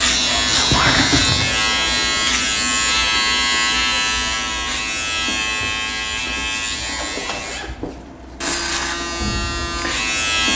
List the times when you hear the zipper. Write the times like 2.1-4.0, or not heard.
0.2-1.5, 6.8-8.5.